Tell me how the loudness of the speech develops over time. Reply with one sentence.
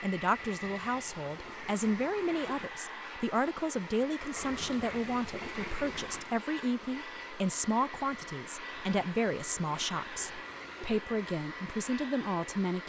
The volume of the speech stays about the same.